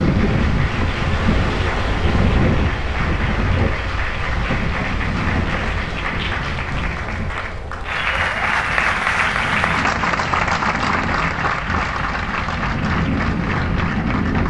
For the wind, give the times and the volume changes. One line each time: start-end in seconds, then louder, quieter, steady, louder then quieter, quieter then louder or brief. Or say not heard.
0.0-14.4 quieter then louder.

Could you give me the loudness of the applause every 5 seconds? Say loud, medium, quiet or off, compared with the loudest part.
medium, loud, loud.